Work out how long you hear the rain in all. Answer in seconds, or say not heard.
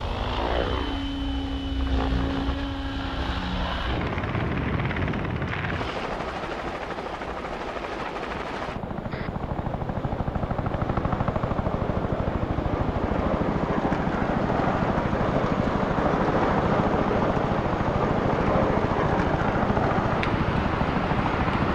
18 s.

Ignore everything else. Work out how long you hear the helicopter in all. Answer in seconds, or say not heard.
22 s.